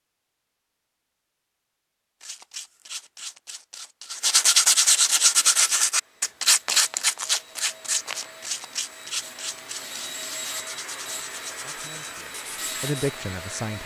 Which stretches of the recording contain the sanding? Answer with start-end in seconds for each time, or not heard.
2.2-13.1.